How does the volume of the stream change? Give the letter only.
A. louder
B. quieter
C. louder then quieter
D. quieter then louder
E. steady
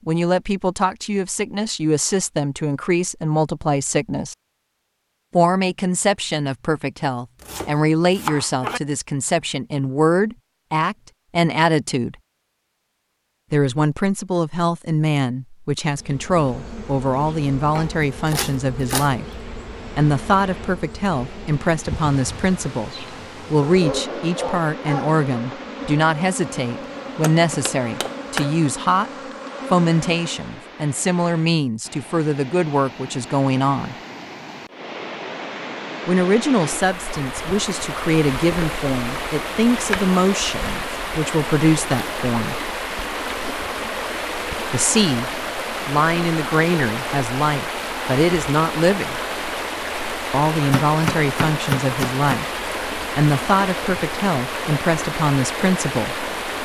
A.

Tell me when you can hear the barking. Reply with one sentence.
The barking can be heard from 23.6 to 25.2 s.